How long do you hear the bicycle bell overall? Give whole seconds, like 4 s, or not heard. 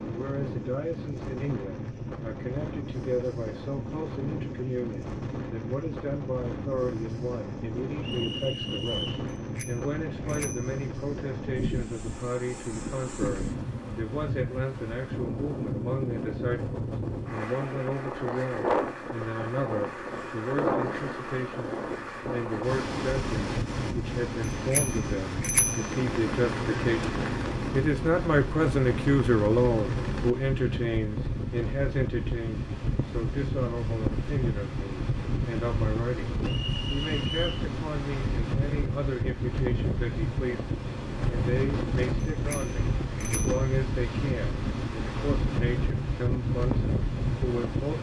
4 s.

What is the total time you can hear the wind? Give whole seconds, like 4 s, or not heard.
48 s.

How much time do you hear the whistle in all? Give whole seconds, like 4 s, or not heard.
2 s.